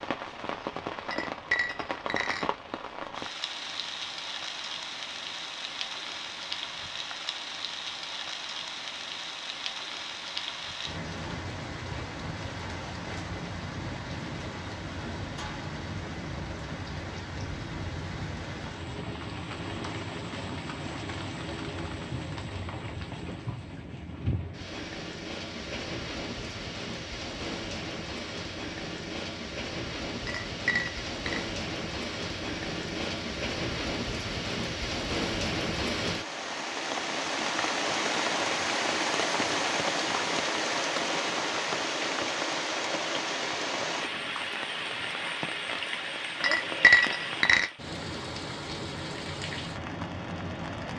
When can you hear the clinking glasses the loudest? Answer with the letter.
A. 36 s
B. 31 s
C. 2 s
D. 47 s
D.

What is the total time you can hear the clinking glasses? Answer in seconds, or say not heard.
4 s.